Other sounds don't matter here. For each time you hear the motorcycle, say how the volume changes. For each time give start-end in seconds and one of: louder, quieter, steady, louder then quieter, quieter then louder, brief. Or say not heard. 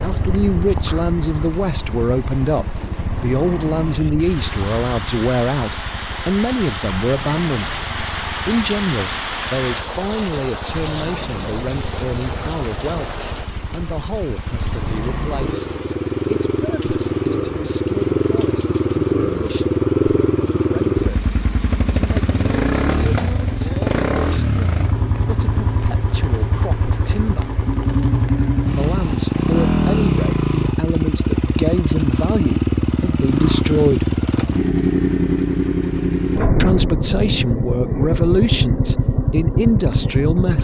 0.0-40.5 louder.